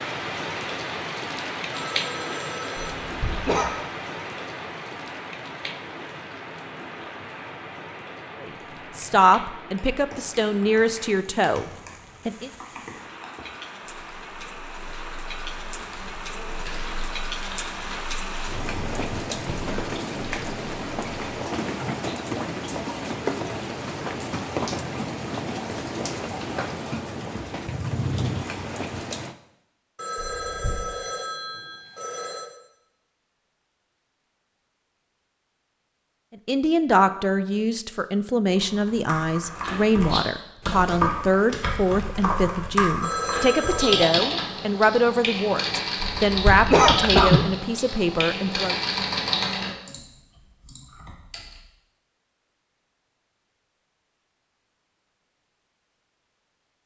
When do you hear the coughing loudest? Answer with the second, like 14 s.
47 s.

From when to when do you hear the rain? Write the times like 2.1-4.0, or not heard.
0.0-29.4.